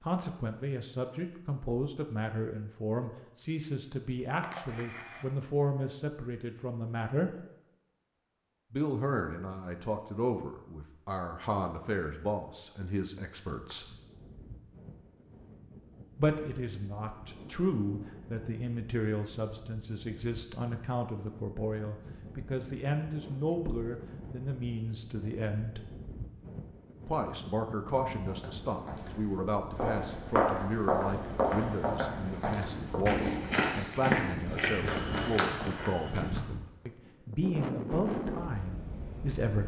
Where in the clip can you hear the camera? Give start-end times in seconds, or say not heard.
4.4-5.3.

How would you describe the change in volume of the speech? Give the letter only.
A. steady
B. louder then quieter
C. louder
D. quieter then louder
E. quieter
A.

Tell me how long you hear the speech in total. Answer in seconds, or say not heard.
35 s.